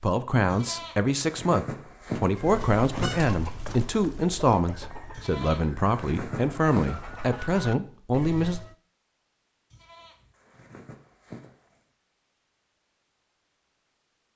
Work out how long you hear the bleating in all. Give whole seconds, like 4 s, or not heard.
7 s.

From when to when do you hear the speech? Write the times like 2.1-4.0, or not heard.
0.0-8.6.